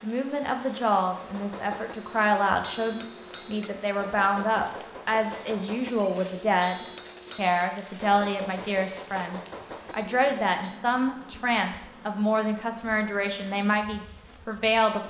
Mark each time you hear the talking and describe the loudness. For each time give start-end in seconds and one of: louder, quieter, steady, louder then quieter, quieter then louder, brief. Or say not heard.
0.0-15.0 steady.